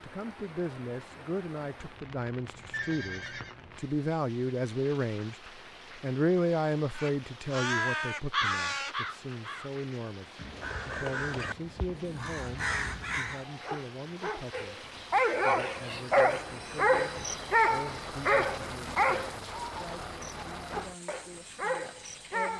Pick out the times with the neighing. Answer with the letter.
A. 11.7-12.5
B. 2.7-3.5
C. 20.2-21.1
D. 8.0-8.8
B.